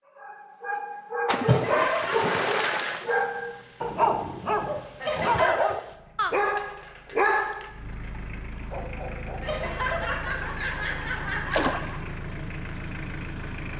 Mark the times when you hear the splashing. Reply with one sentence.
You can hear the splashing from 1.3 to 3.2 s and from 11.5 to 11.9 s.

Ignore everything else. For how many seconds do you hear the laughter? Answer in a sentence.
The laughter can be heard for 5 seconds in total.